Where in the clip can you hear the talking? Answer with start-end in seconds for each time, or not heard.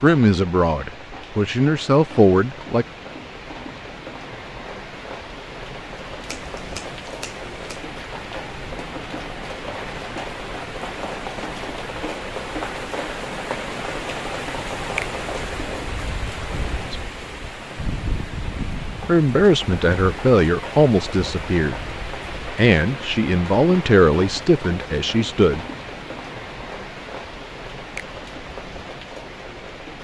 0.0-2.9, 19.1-25.6.